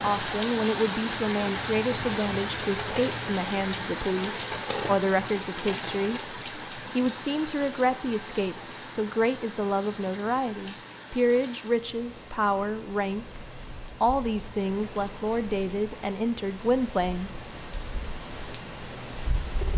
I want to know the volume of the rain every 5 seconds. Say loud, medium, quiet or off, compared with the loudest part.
loud, medium, quiet, medium.